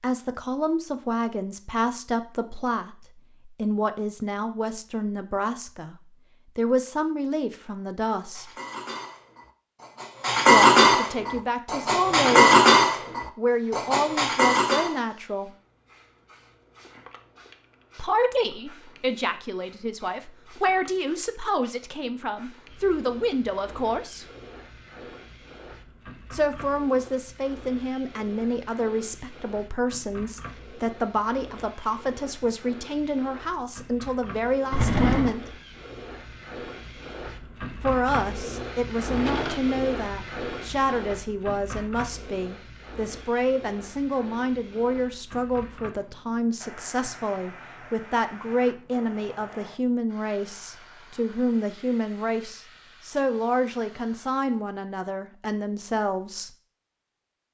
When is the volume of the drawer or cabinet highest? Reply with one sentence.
The loudest moment of the drawer or cabinet is at 35 seconds.